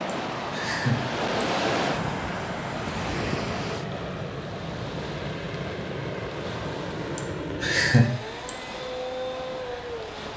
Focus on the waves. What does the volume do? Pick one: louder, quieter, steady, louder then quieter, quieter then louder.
quieter.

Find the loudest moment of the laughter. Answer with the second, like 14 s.
8 s.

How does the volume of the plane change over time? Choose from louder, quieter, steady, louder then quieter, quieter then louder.
steady.